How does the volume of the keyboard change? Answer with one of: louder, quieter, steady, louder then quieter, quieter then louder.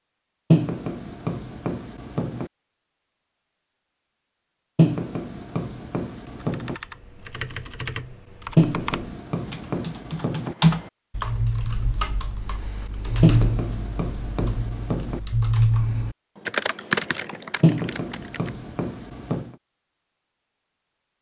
louder.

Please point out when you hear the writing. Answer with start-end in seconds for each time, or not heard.
0.5-2.5, 4.8-6.8, 8.6-10.6, 13.2-15.2, 17.6-19.5.